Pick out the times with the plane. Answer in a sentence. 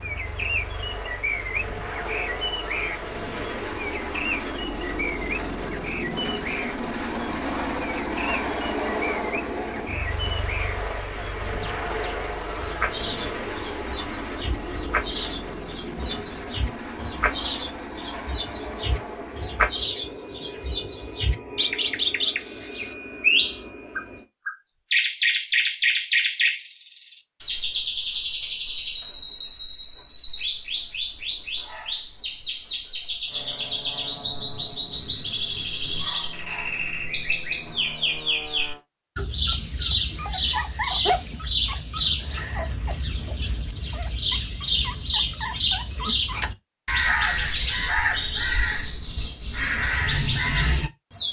You can hear the plane from 0.0 to 24.2 s and from 33.2 to 38.8 s.